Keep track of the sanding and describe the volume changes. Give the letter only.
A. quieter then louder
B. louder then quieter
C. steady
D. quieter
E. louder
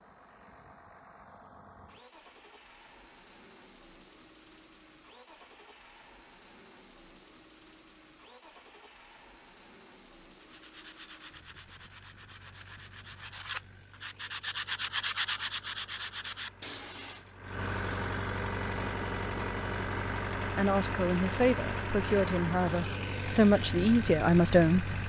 B.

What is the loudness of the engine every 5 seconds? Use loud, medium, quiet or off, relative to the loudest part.
quiet, quiet, quiet, loud, loud.